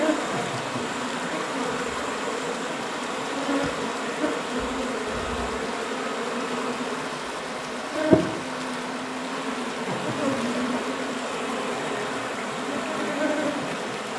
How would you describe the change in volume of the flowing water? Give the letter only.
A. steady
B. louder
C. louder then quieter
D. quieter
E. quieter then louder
A.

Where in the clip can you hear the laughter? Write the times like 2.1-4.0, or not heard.
0.3-0.8, 9.8-10.4.